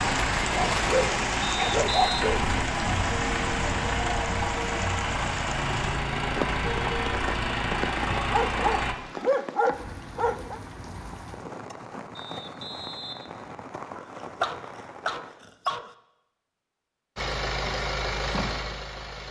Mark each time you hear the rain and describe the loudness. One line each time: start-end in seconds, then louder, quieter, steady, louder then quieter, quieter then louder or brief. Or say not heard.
0.0-15.4 quieter.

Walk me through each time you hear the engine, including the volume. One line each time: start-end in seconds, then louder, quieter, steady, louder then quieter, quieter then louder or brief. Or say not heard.
0.0-8.9 steady
17.1-19.2 brief.